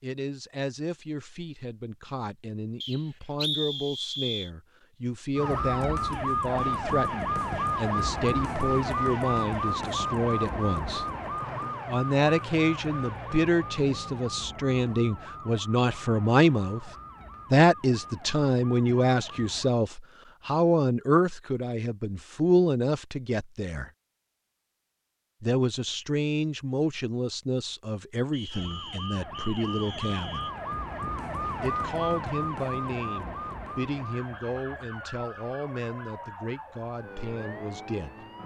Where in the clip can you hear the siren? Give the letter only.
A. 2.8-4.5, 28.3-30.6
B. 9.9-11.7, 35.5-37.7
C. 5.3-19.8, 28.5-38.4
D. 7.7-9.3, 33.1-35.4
C.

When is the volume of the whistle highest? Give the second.
4 s.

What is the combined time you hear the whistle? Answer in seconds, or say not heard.
4 s.